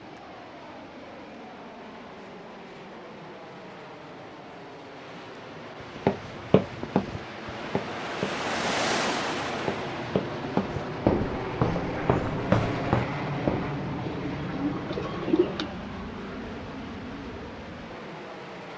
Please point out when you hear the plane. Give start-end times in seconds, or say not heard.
0.0-18.7.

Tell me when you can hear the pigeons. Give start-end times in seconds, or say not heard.
14.1-15.7.